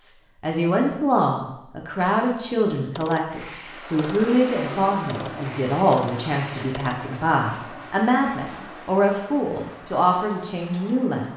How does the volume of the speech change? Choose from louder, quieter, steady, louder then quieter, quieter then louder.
steady.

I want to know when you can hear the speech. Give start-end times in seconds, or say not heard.
0.0-11.3.